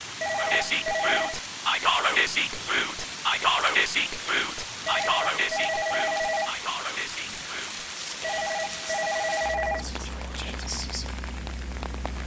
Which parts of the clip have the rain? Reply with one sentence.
The rain can be heard from 0.0 to 12.2 s.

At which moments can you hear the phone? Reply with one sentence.
The phone can be heard from 0.2 to 1.4 s, from 4.8 to 6.5 s and from 8.2 to 9.8 s.